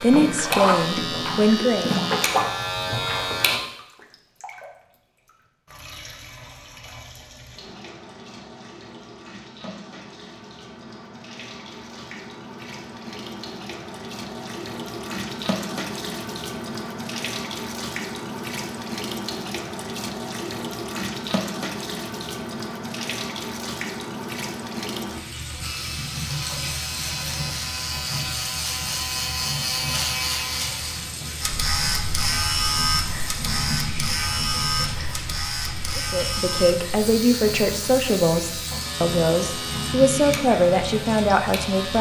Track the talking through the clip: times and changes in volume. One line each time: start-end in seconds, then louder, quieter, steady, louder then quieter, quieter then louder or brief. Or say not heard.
0.0-1.9 brief
36.0-41.9 steady.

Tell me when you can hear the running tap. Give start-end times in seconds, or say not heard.
0.0-41.9.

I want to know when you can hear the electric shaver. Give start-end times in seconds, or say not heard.
0.0-3.6, 25.6-41.9.